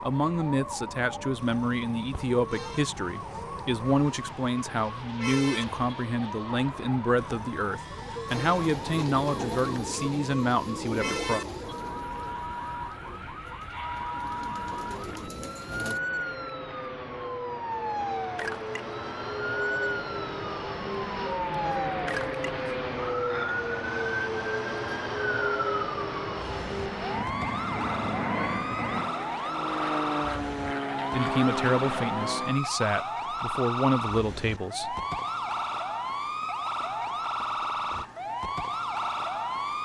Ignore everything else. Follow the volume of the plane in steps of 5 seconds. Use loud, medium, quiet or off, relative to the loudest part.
quiet, quiet, quiet, medium, loud, loud, loud, off.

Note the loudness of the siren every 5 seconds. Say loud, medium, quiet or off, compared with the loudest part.
medium, medium, medium, loud, loud, loud, loud, loud.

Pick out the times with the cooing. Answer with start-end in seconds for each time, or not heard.
8.4-16.0.